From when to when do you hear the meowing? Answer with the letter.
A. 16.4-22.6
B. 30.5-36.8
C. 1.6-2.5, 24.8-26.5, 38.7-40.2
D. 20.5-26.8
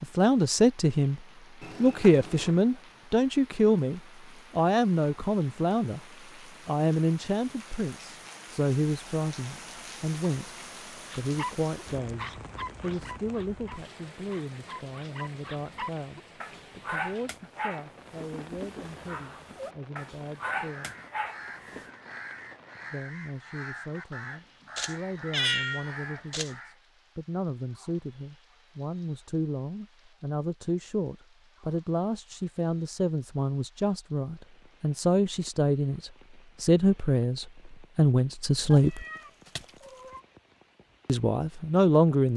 C.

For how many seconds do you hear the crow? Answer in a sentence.
You can hear the crow for 6 seconds altogether.